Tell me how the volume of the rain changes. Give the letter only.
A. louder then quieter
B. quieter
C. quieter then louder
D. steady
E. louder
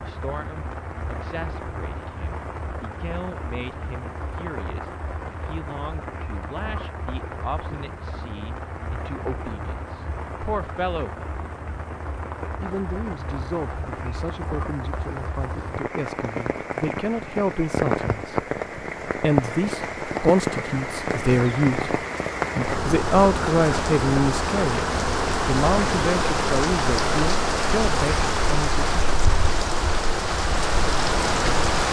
E.